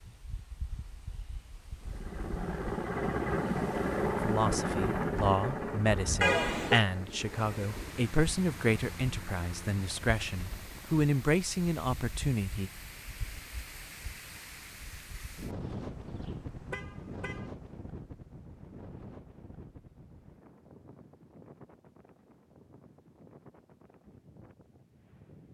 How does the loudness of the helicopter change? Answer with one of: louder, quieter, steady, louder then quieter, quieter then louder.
quieter.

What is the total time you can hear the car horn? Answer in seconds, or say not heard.
2 s.